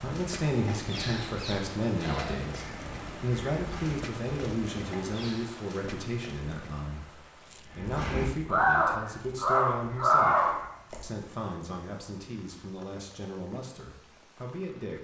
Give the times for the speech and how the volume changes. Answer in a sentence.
You can hear the speech from 0.0 to 15.0 s, getting quieter.